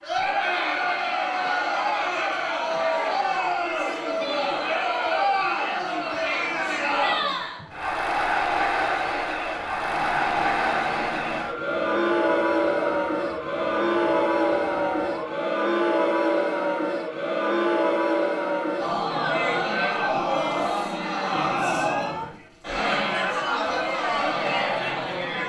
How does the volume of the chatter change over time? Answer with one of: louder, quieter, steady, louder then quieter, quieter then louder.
steady.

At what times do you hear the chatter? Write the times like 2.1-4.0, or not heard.
0.0-25.4.